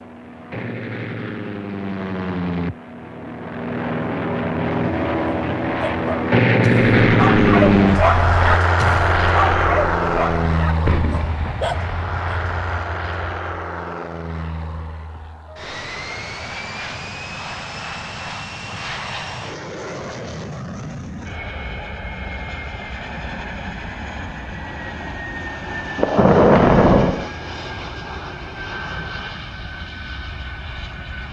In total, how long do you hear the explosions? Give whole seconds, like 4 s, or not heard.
4 s.